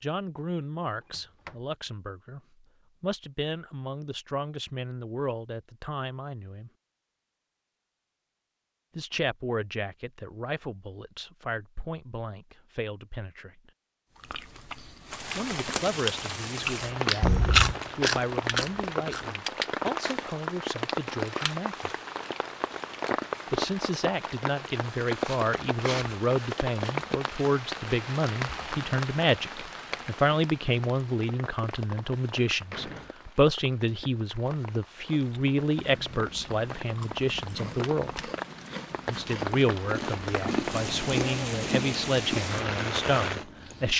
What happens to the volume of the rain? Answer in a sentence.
The loudness of the rain goes down, then up.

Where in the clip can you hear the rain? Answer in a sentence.
The rain can be heard from 15.1 to 43.9 s.